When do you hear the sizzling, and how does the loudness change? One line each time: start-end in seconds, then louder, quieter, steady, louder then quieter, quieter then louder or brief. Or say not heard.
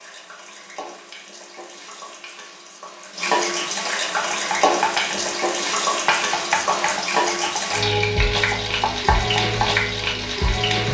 0.0-10.9 louder.